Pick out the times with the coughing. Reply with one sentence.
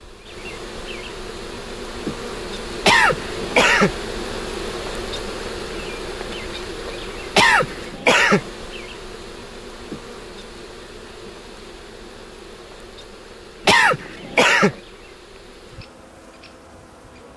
You can hear the coughing from 2.8 to 4.0 s, from 7.3 to 8.4 s and from 13.7 to 14.8 s.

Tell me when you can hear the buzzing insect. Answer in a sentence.
You can hear the buzzing insect from 0.0 to 17.3 s.